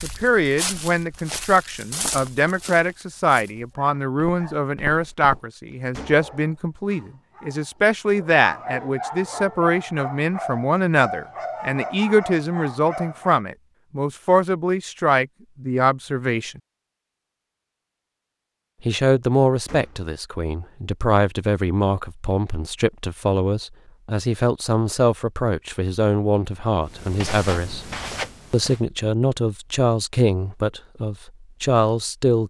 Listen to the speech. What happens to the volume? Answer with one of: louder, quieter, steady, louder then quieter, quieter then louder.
steady.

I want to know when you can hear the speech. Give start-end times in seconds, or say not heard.
0.0-16.6, 18.9-27.9, 28.5-32.4.